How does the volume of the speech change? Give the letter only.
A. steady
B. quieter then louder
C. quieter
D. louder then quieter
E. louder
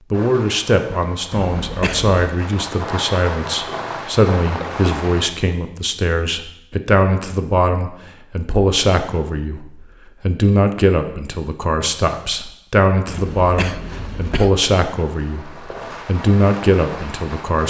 A.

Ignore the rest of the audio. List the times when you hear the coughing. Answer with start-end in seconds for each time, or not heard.
1.3-2.2, 13.1-14.6.